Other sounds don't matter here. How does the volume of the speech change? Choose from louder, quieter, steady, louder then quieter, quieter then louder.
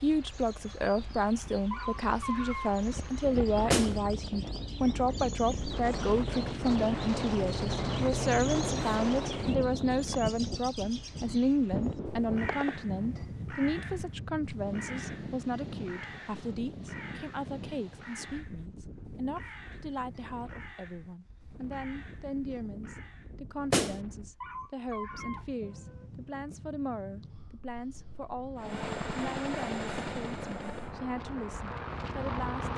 quieter.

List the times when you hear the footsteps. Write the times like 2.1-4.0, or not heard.
not heard.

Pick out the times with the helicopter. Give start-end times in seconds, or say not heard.
28.6-32.7.